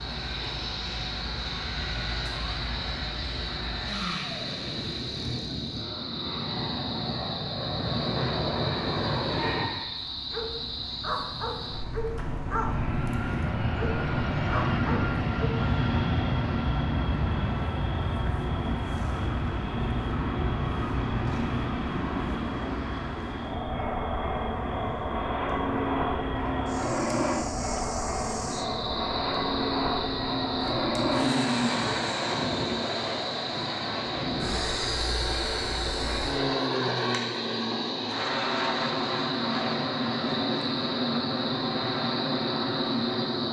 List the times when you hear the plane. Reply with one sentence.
You can hear the plane from 0.0 to 43.4 s.